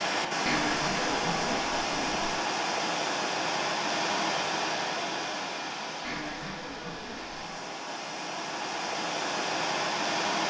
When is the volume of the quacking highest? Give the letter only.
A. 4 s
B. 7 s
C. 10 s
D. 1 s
D.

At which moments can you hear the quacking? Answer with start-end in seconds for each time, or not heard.
0.5-2.3, 6.0-7.7.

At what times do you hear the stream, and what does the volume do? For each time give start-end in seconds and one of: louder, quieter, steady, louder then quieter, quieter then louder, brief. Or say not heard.
0.0-10.4 quieter then louder.